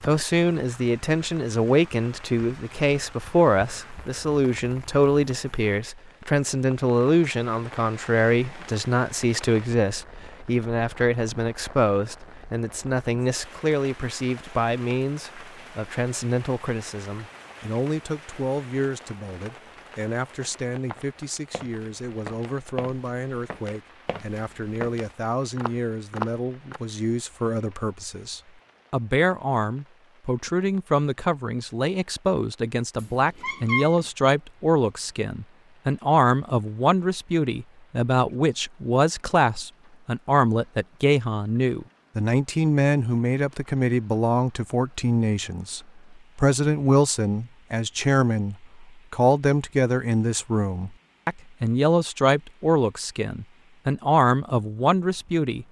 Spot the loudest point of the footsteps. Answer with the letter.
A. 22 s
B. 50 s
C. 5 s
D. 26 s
D.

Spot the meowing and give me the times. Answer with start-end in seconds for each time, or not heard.
33.0-34.0.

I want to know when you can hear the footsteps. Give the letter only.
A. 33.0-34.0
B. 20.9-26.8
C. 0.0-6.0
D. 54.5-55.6
B.